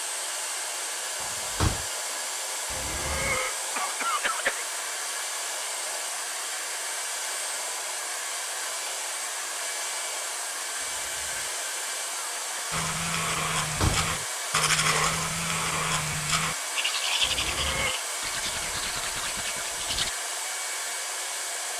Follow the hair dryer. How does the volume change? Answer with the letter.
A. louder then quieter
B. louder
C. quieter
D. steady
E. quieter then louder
D.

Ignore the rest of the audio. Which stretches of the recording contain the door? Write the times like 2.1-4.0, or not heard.
1.2-1.9, 13.6-14.2.